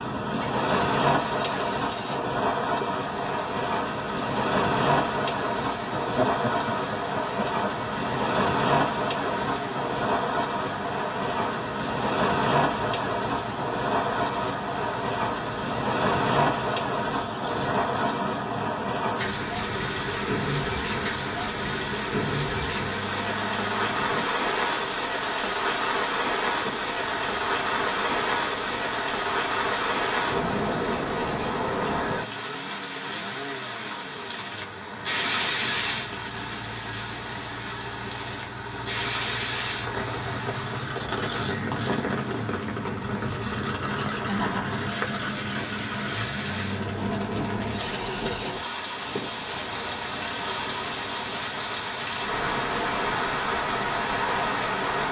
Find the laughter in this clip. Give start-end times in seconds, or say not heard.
5.9-7.7, 44.1-44.9.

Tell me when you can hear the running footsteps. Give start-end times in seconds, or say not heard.
not heard.